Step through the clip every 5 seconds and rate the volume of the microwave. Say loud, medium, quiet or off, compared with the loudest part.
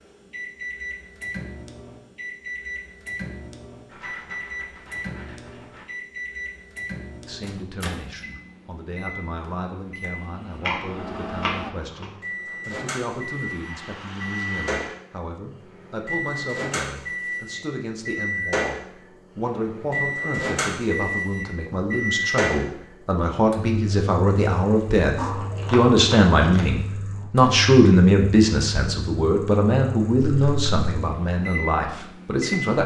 medium, medium, medium, loud, loud, medium, medium.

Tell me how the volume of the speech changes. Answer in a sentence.
The loudness of the speech goes up.